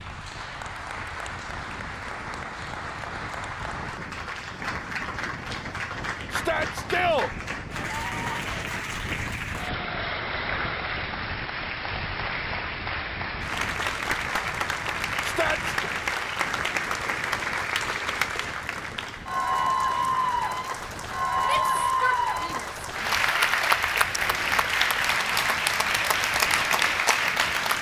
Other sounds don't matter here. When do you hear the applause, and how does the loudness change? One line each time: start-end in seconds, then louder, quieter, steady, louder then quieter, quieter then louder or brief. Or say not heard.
0.0-27.7 louder.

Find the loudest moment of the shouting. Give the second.
7 s.